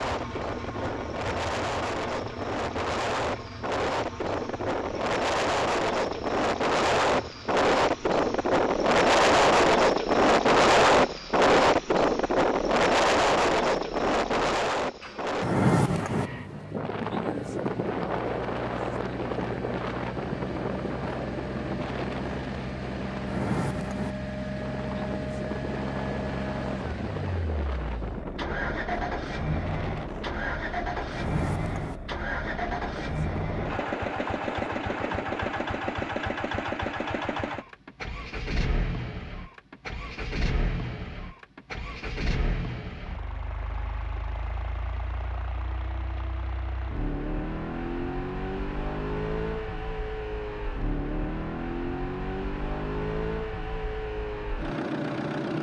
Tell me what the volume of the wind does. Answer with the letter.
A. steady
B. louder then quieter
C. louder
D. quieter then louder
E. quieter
B.